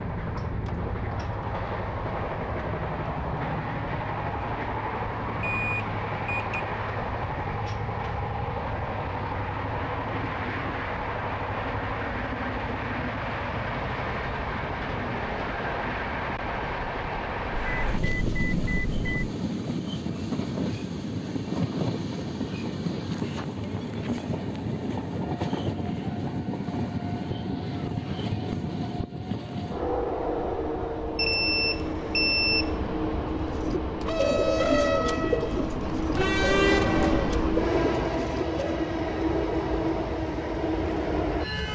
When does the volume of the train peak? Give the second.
37 s.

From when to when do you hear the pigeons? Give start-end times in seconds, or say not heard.
33.4-38.9.